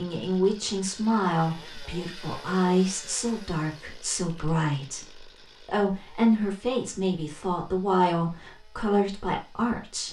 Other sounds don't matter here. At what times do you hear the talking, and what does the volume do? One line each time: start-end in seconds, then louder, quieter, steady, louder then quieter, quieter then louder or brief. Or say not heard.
0.0-10.0 steady.